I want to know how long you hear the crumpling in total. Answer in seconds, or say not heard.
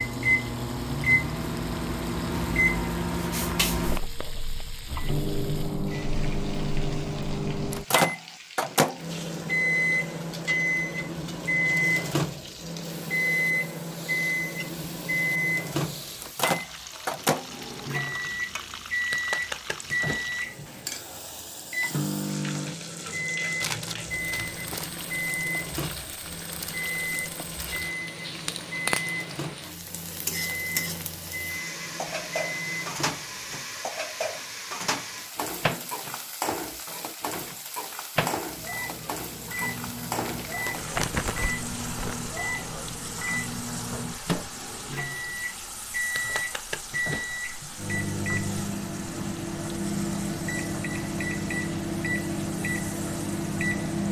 3 s.